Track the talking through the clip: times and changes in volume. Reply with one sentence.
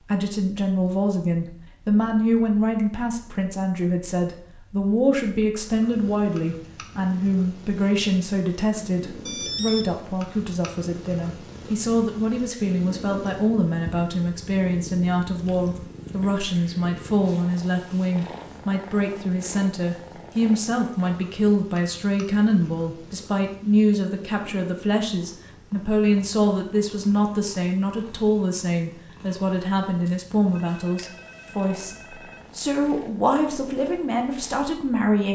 You can hear the talking from 0.0 to 31.9 s, at a steady volume; and briefly from 32.5 to 35.3 s.